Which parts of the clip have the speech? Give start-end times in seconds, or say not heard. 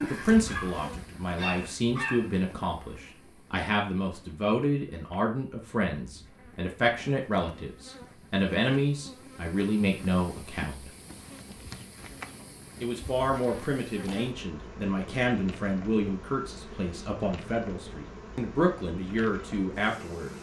0.0-10.9, 12.8-20.3.